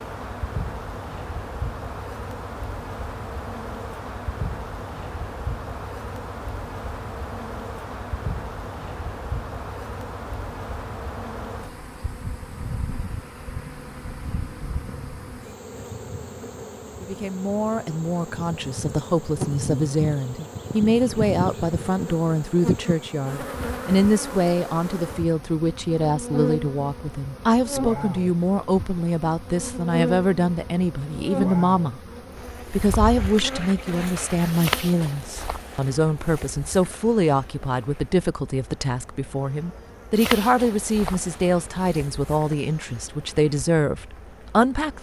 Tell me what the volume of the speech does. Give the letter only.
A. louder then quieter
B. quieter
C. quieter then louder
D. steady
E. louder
D.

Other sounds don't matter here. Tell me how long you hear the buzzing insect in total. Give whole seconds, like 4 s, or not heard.
45 s.